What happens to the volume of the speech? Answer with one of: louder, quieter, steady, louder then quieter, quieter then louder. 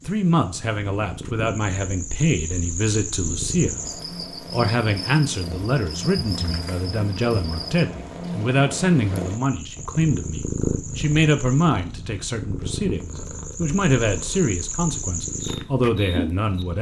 steady.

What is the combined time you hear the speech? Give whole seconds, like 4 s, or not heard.
16 s.